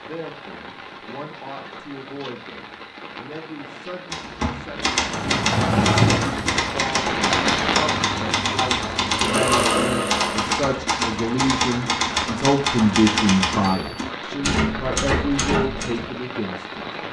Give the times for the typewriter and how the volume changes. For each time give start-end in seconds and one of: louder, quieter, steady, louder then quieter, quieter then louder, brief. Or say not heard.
4.1-16.1 steady.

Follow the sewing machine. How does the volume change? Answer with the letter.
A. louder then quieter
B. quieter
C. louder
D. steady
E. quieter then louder
E.